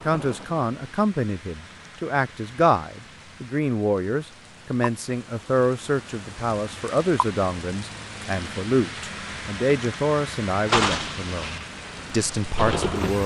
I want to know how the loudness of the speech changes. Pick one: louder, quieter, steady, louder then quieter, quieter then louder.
steady.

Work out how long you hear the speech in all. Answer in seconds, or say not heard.
13 s.